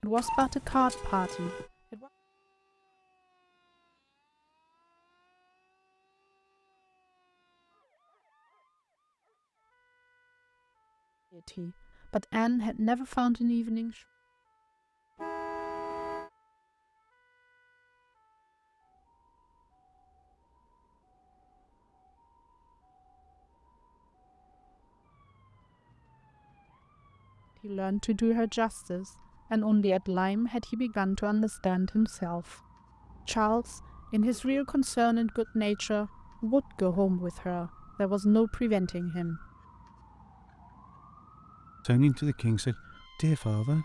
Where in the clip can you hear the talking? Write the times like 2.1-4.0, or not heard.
0.0-2.0, 11.4-13.9, 27.6-32.5, 33.2-39.5, 41.9-43.7.